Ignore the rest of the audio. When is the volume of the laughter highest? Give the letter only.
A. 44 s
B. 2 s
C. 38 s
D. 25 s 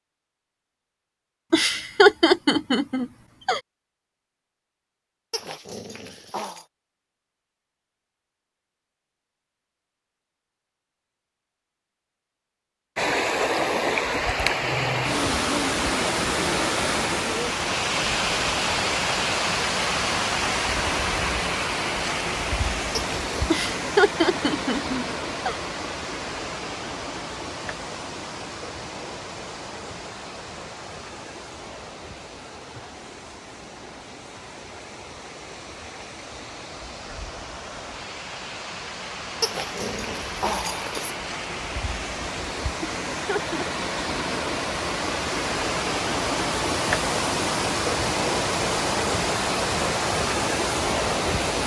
B.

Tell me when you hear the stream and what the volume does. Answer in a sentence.
The stream can be heard from 12.9 to 51.6 s, getting quieter then louder.